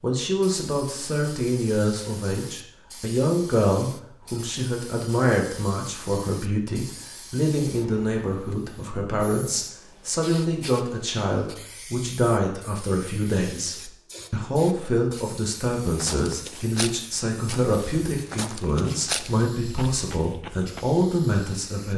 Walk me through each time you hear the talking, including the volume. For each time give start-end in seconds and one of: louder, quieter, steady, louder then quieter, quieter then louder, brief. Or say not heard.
0.0-21.9 steady.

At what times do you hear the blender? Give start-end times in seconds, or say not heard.
not heard.